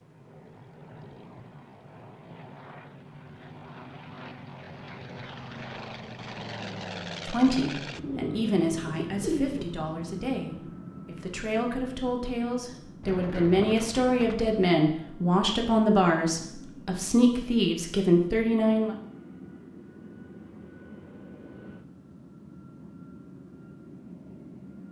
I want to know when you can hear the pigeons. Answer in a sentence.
You can hear the pigeons from 8.0 to 9.8 s and from 13.0 to 14.7 s.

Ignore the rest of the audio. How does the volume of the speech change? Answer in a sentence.
The volume of the speech goes up.